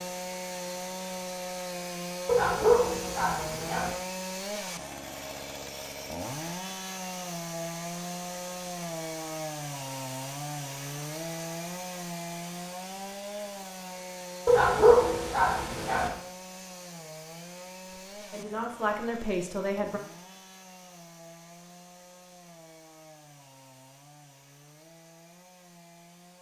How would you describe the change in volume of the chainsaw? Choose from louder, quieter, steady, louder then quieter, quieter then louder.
quieter.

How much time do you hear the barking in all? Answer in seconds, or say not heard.
3 s.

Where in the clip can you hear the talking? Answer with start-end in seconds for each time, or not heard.
17.9-20.0.